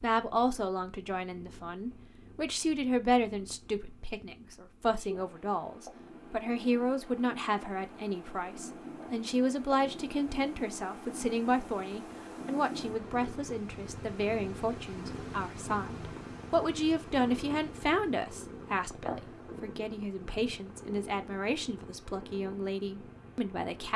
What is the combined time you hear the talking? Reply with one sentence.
You can hear the talking for 24 seconds altogether.